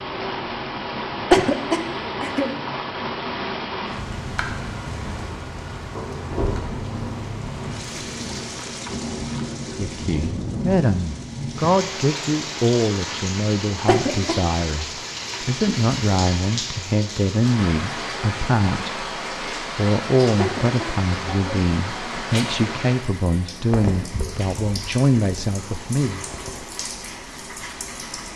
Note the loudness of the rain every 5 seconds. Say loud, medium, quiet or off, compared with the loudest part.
loud, loud, loud, loud, loud, medium.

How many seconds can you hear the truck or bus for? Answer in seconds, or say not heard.
5 s.